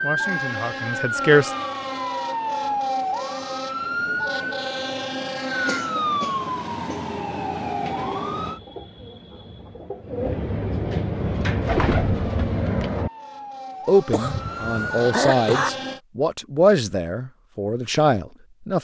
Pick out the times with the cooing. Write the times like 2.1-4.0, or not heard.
7.8-13.1.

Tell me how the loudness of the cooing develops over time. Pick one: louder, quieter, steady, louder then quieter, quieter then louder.
louder.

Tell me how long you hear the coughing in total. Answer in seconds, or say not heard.
3 s.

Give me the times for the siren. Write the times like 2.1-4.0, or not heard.
0.0-8.6, 11.1-16.0.